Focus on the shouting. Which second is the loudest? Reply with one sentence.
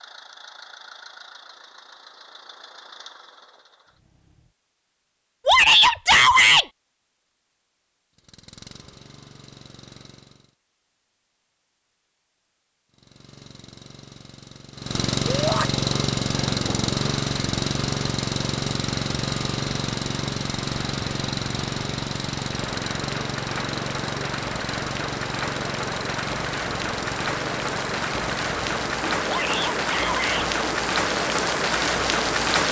The volume of the shouting peaks at 6 seconds.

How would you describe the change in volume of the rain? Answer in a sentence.
The volume of the rain goes up.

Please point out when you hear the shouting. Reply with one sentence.
The shouting can be heard from 5.5 to 6.7 s, from 15.2 to 15.7 s and from 29.2 to 30.5 s.